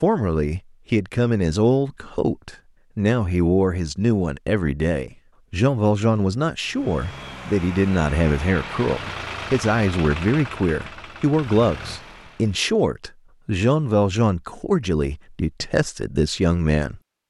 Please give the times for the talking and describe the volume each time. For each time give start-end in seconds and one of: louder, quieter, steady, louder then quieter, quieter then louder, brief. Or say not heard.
0.0-17.0 steady.